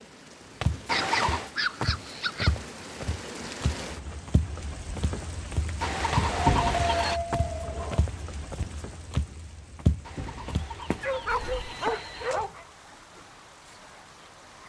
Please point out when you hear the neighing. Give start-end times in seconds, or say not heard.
0.8-1.5, 5.8-7.2, 10.1-12.5.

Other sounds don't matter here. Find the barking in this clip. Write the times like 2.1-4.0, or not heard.
0.9-2.5, 6.2-8.1, 10.5-12.7.